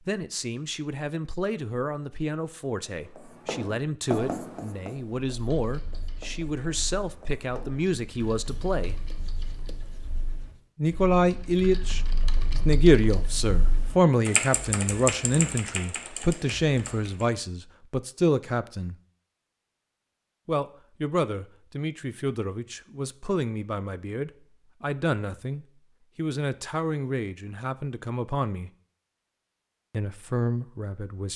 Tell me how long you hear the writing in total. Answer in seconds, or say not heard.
8 s.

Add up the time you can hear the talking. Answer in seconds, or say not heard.
27 s.